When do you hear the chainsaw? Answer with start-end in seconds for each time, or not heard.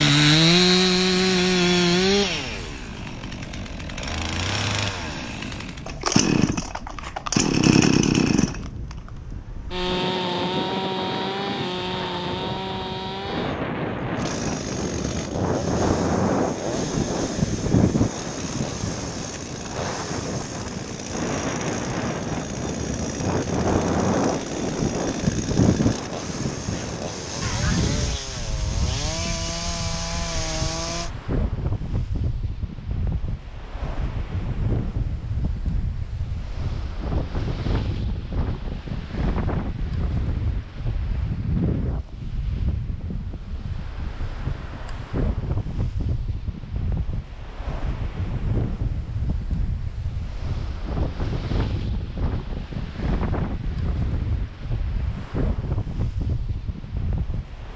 0.0-31.1.